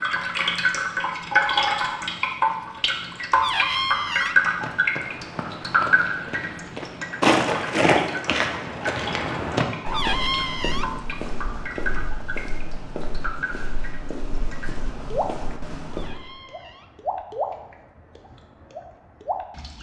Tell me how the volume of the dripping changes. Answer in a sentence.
The volume of the dripping goes down.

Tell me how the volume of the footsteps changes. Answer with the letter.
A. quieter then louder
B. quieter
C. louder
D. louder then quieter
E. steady
D.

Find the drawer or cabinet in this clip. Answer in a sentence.
You can hear the drawer or cabinet from 3.3 to 4.4 s, from 9.8 to 10.9 s and from 15.8 to 16.9 s.